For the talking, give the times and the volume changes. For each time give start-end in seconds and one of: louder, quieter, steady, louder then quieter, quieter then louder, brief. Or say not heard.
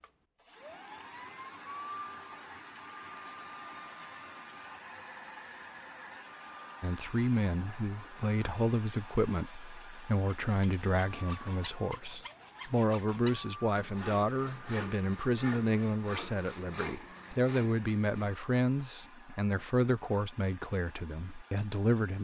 6.8-22.1 steady.